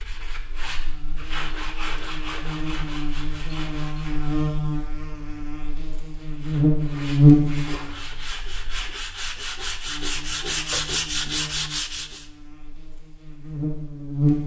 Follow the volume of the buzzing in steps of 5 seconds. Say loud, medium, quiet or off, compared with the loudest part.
medium, loud, medium.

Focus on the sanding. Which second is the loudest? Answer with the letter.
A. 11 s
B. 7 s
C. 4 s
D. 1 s
A.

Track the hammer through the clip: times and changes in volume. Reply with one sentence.
You can't hear the hammer here.